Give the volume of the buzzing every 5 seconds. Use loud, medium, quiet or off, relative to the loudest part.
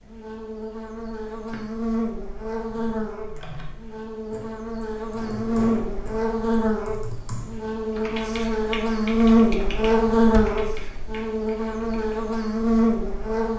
medium, loud, loud.